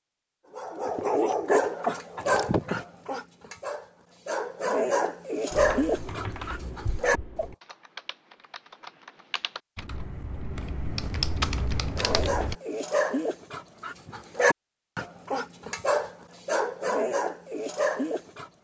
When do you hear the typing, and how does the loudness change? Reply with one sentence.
The typing can be heard from 5.5 to 12.6 s, getting quieter then louder.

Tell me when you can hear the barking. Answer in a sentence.
You can hear the barking from 0.6 to 7.5 s and from 11.8 to 18.5 s.